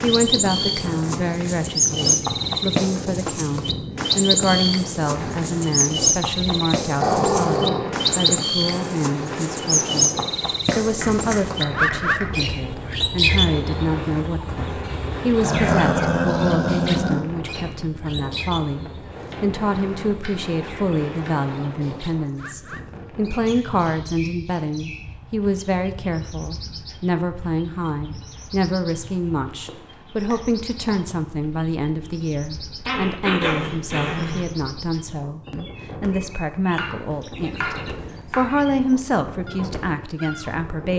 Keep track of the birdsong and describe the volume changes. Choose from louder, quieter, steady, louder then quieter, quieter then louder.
quieter.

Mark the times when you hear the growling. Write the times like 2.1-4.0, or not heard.
7.0-7.9, 15.4-17.2, 32.9-34.5.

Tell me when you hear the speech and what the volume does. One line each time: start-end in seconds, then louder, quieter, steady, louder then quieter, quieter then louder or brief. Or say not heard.
0.0-40.9 steady.